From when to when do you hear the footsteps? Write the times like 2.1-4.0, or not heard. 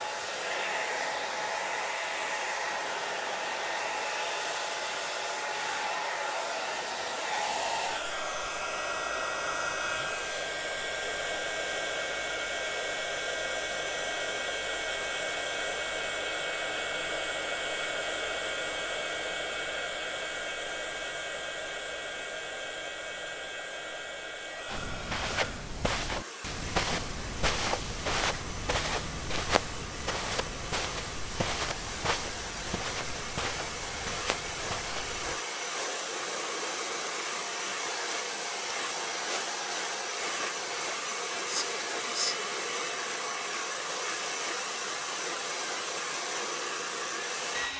24.6-35.4.